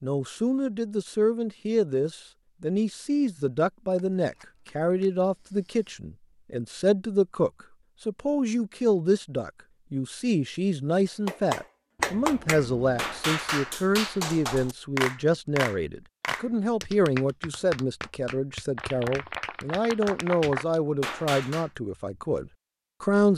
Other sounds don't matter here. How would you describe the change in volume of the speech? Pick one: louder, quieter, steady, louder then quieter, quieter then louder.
steady.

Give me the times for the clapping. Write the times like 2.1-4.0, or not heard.
11.2-21.7.